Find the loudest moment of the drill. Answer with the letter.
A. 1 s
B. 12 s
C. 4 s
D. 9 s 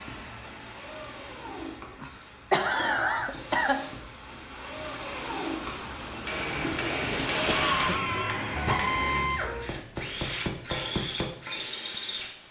D.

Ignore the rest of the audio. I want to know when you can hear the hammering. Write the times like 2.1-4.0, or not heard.
6.2-11.3.